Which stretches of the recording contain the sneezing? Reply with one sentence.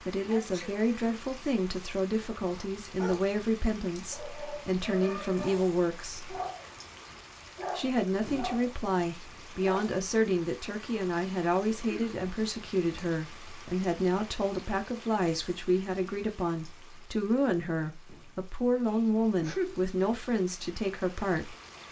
The sneezing can be heard from 0.2 to 0.7 s, from 11.8 to 12.2 s and from 19.4 to 19.9 s.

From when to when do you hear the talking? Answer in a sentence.
You can hear the talking from 0.1 to 6.3 s and from 7.8 to 21.6 s.